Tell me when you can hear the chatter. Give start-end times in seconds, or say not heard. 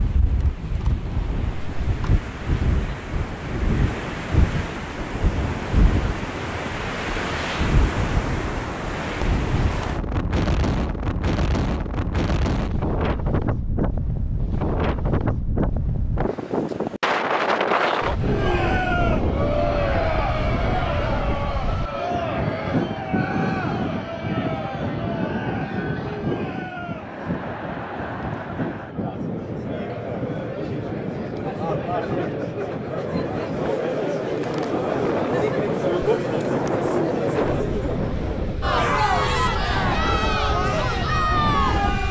18.2-42.0.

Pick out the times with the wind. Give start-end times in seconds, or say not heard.
0.0-42.0.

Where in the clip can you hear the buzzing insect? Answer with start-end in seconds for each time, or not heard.
not heard.